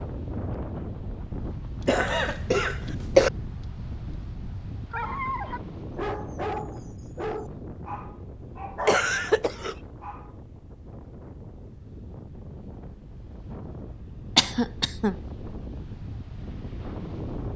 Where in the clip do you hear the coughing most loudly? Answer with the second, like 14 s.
3 s.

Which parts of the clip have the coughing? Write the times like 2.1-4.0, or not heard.
1.9-3.3, 8.8-9.8, 14.3-15.2.